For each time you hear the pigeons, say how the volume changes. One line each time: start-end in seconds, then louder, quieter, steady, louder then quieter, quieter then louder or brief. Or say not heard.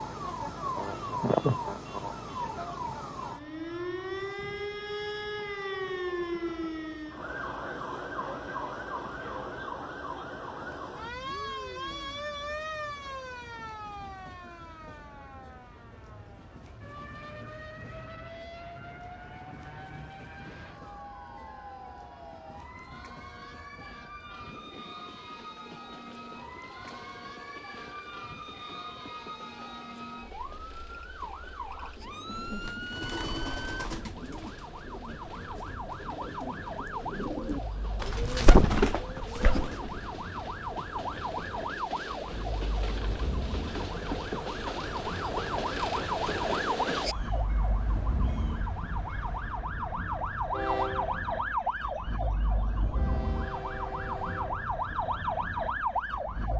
32.2-40.0 quieter then louder.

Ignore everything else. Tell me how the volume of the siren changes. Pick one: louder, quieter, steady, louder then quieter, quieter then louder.
quieter then louder.